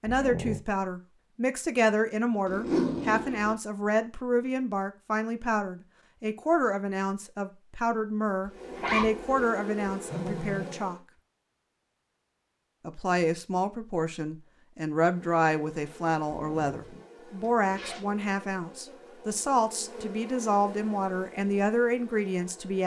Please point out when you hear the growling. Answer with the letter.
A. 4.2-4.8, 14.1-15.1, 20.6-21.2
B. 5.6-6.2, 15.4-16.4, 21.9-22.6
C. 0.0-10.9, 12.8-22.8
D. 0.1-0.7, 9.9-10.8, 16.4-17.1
D.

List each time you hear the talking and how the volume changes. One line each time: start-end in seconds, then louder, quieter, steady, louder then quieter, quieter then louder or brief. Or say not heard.
0.0-10.9 steady
12.8-22.8 steady.